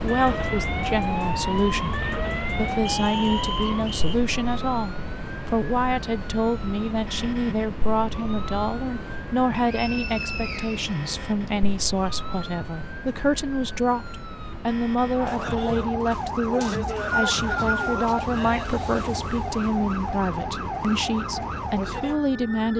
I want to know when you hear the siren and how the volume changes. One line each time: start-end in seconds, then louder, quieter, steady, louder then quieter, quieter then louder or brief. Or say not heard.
0.0-22.7 quieter then louder.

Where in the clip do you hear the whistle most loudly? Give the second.
17 s.